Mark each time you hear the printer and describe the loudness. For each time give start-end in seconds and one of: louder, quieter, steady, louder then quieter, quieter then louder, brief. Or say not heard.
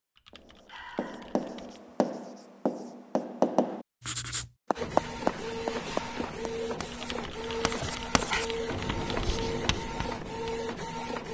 4.8-11.2 steady.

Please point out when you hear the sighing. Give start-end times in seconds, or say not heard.
0.7-1.4, 7.8-8.4.